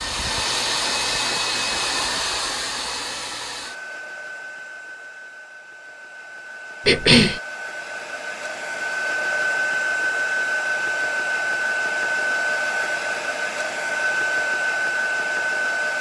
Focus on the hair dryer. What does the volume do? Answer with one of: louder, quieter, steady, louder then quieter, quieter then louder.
quieter then louder.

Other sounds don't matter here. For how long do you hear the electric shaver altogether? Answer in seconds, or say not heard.
not heard.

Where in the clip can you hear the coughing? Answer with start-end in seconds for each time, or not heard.
6.8-7.4.